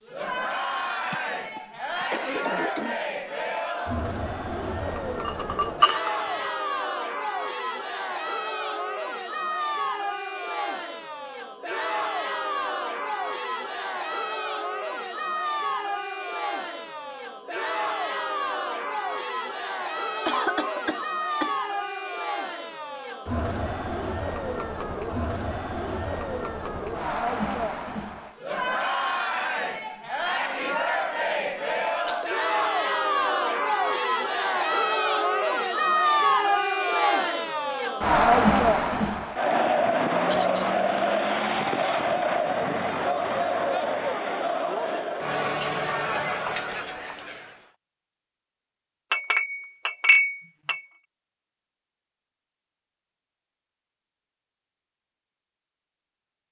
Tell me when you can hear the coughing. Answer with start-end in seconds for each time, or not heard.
1.1-3.0, 20.2-21.6, 40.3-40.9.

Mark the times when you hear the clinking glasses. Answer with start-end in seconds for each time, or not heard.
5.2-6.2, 32.0-32.5, 49.1-50.8.